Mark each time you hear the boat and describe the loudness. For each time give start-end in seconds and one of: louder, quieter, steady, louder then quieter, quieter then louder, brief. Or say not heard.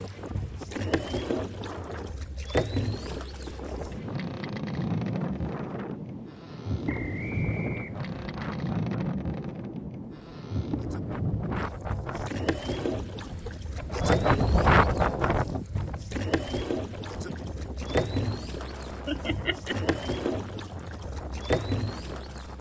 0.0-22.5 steady.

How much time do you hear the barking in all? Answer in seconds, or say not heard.
not heard.